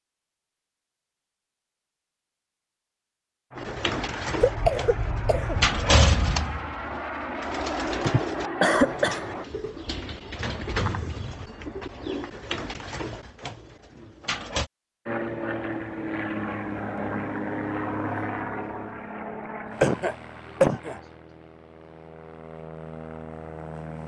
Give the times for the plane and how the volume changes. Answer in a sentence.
You can hear the plane from 3.5 to 9.4 s, getting louder; and from 15.1 to 24.0 s, getting quieter then louder.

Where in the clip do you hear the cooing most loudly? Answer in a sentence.
The volume of the cooing peaks at 6 seconds.